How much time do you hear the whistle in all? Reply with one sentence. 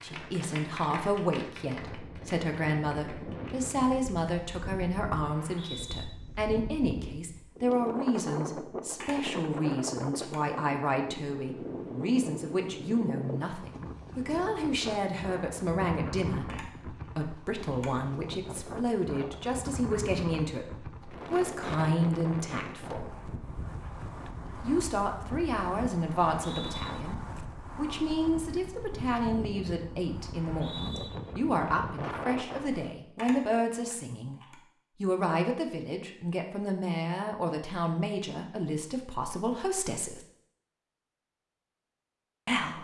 You can hear the whistle for 2 seconds altogether.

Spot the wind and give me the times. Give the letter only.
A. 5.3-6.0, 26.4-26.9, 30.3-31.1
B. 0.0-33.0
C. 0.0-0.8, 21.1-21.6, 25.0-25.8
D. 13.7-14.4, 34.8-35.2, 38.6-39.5
B.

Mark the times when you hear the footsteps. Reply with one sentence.
You can't hear the footsteps here.